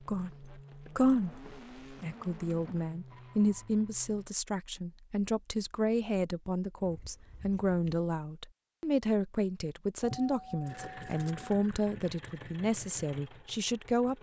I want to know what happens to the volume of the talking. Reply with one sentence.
The loudness of the talking stays about the same.